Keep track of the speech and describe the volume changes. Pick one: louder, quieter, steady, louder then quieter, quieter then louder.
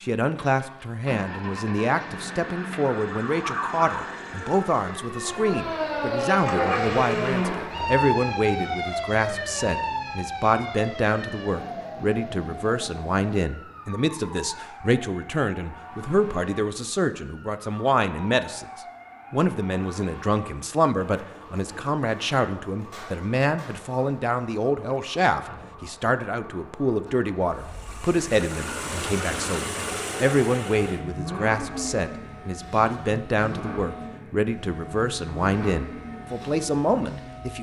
steady.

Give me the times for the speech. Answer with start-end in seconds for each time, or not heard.
0.0-18.6, 19.3-37.5.